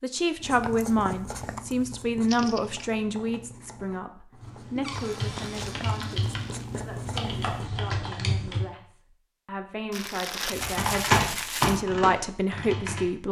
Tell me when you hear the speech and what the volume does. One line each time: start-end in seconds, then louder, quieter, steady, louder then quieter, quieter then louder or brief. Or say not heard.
0.0-13.2 quieter then louder.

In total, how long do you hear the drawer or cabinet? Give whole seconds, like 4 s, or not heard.
2 s.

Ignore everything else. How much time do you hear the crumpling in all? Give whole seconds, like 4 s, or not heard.
4 s.